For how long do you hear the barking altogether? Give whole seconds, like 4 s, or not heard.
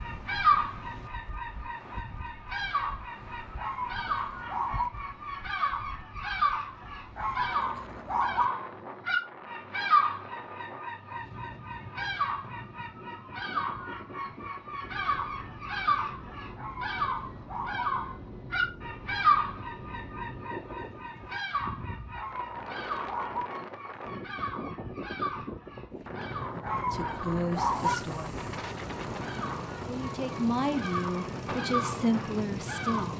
7 s.